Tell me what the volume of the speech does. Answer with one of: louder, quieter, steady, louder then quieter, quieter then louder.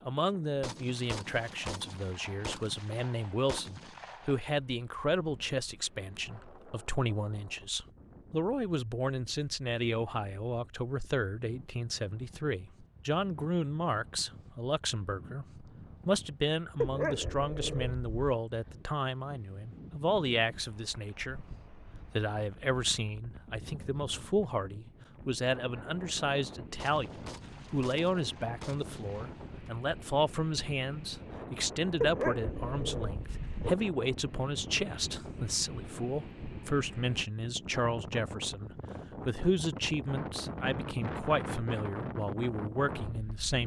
steady.